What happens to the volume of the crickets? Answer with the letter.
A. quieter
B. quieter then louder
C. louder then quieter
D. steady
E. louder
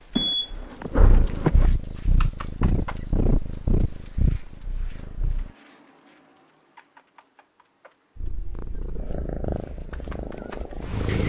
B.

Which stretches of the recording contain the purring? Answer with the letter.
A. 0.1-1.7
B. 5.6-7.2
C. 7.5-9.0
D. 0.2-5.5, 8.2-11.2
D.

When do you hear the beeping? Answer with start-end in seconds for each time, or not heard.
0.1-1.7.